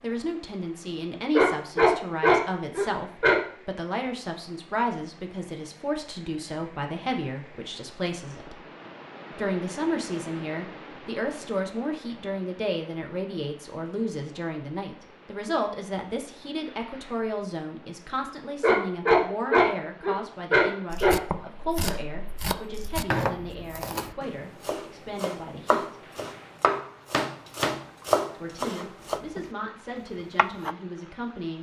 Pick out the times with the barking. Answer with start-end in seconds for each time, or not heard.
1.4-3.4, 18.6-21.1.